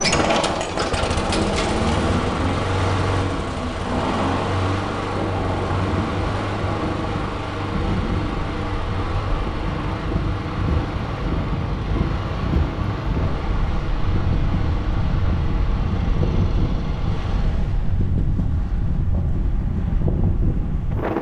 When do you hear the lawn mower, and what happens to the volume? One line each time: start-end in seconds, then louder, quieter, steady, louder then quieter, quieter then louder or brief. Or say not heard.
0.0-17.6 quieter.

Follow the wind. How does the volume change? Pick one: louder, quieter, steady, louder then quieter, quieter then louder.
steady.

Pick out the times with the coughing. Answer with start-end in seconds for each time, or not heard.
not heard.